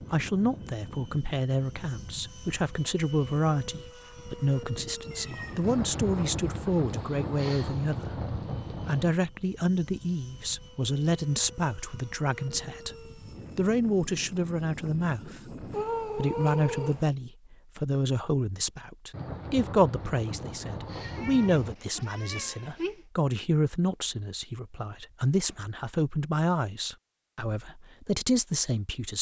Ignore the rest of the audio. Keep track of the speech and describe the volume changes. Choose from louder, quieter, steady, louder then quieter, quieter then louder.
steady.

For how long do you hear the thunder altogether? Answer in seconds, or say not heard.
6 s.